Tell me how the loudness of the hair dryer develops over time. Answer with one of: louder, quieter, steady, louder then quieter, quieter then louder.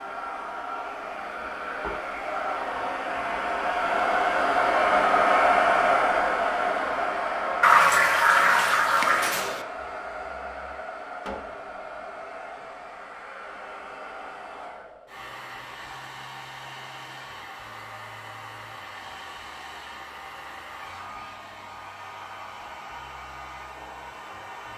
quieter.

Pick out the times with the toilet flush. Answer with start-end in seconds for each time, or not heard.
7.6-9.7.